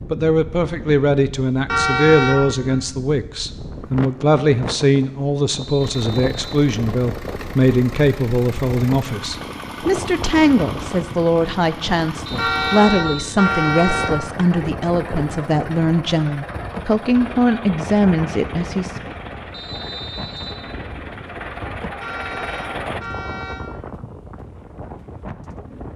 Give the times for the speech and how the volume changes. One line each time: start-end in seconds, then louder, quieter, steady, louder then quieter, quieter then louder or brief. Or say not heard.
0.1-19.1 steady.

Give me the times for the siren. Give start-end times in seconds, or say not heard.
not heard.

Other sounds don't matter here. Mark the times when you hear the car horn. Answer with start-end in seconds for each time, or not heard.
1.6-2.8, 12.3-14.1, 22.0-23.6.